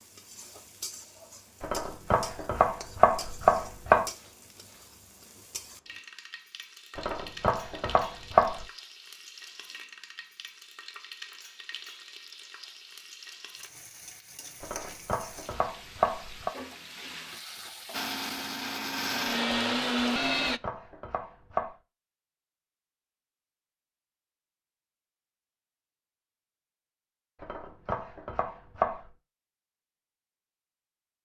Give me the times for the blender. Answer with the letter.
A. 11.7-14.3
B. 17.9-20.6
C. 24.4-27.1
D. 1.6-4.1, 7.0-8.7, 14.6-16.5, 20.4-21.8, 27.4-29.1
B.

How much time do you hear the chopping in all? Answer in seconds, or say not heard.
9 s.